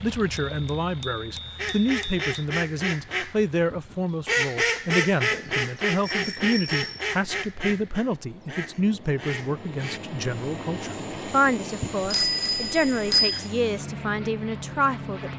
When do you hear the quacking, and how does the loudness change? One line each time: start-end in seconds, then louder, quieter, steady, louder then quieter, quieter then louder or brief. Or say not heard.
1.6-10.0 louder then quieter.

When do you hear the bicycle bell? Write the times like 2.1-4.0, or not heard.
0.3-2.2, 6.0-7.0, 11.8-13.4.